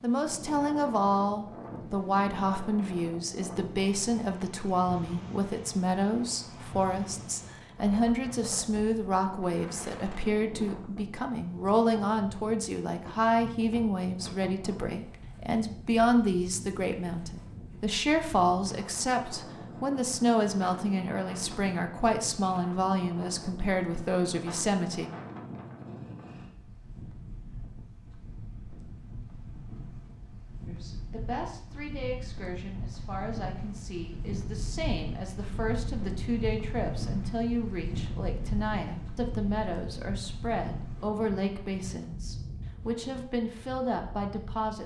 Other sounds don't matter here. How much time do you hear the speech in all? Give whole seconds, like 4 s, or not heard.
39 s.